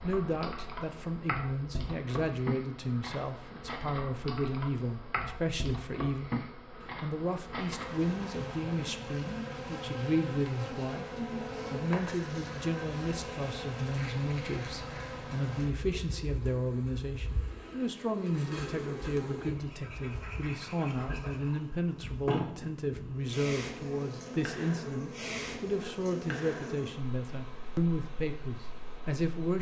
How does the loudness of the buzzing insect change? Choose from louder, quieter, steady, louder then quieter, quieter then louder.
steady.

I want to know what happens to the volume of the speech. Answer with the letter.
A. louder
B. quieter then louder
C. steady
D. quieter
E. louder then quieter
C.